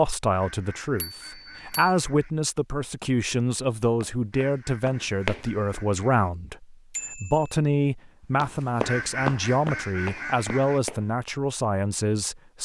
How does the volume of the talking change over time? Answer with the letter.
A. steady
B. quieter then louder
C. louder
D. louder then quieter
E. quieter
A.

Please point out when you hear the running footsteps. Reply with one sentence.
You can hear the running footsteps from 3.9 to 5.8 s and from 8.4 to 11.1 s.